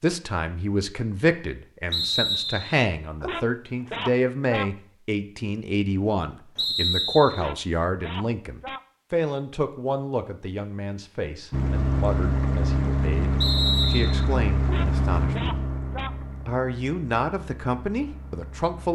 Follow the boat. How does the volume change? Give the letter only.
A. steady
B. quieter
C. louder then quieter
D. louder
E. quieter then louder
B.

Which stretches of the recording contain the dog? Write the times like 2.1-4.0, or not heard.
3.2-4.7, 7.3-8.8, 14.7-16.1.